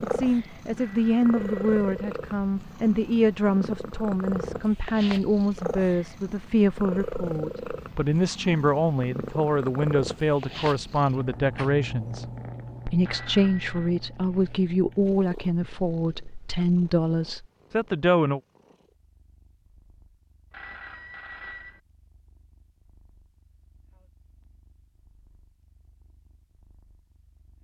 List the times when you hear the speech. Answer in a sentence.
You can hear the speech from 0.0 to 12.2 s and from 12.8 to 18.4 s.